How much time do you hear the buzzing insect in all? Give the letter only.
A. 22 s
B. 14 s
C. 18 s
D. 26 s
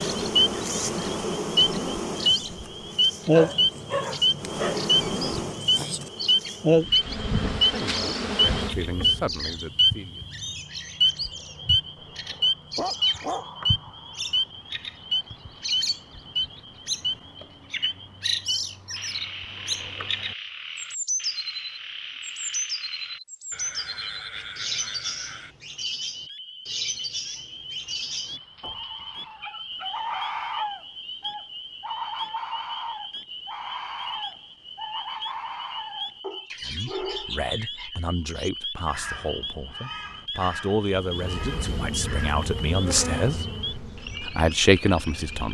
B.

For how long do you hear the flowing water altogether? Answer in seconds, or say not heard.
not heard.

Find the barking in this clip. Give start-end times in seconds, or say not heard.
3.3-6.1, 12.3-13.4, 27.8-30.6, 36.2-37.4.